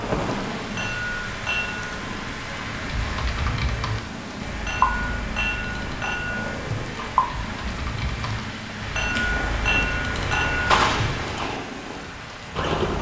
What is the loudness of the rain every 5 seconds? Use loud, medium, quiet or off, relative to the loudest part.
loud, medium, loud.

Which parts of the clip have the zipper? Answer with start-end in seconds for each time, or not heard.
not heard.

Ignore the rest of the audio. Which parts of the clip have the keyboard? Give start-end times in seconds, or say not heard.
2.8-11.6.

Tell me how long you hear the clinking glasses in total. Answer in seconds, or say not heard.
6 s.